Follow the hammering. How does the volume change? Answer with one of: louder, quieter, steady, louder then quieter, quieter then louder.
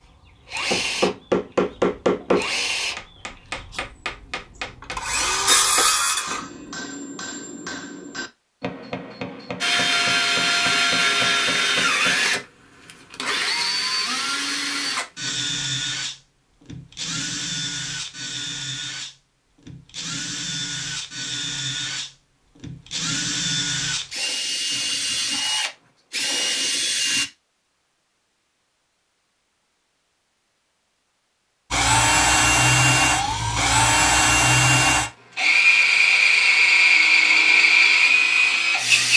quieter.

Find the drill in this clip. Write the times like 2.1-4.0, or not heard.
0.0-6.5, 9.6-27.2, 31.7-39.1.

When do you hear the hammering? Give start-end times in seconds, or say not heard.
0.7-12.4.